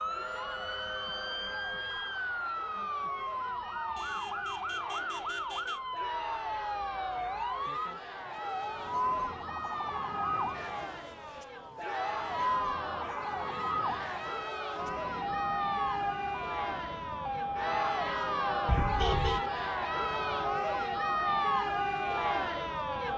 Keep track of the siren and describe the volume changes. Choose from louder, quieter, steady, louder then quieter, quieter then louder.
steady.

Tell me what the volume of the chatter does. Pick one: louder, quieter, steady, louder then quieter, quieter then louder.
louder.